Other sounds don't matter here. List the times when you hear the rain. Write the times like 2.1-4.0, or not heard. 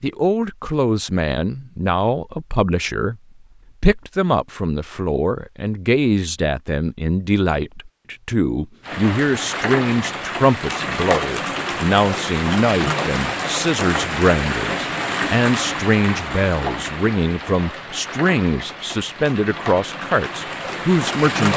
8.8-21.5.